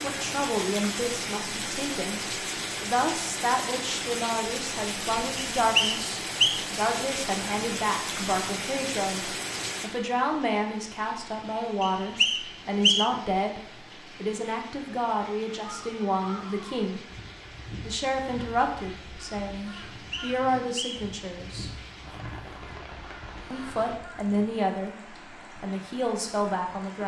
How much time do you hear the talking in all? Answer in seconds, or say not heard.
24 s.